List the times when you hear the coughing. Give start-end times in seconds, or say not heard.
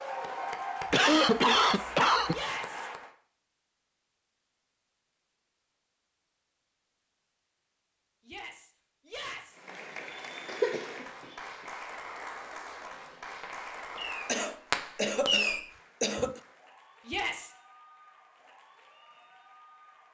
0.9-2.4, 10.4-11.1, 14.2-16.4.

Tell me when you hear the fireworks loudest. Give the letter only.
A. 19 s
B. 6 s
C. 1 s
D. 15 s
D.